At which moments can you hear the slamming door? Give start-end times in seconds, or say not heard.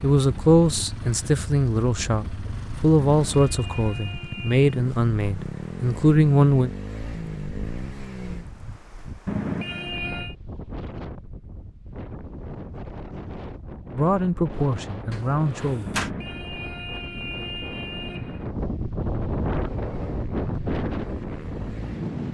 15.1-16.1.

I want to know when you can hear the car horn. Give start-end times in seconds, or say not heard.
3.0-4.7, 9.2-10.3, 15.8-18.6.